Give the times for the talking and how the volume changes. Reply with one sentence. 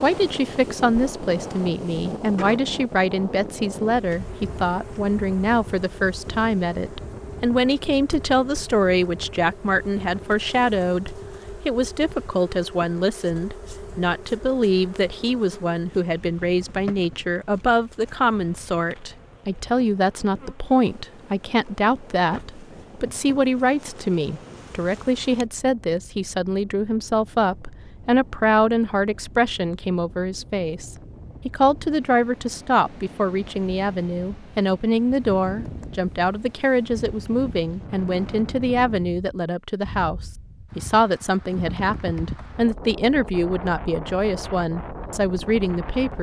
You can hear the talking from 0.0 to 46.1 s, at a steady volume.